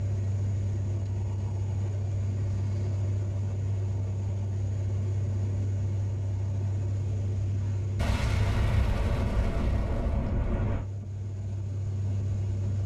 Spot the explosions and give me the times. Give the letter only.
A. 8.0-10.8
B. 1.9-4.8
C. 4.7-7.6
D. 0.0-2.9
A.